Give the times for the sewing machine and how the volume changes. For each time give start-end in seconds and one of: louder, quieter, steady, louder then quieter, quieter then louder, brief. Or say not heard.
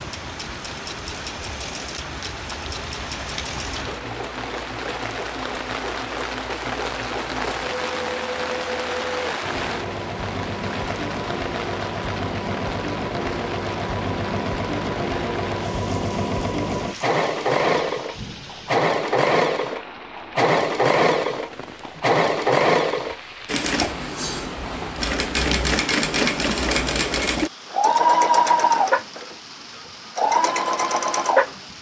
0.0-31.6 louder.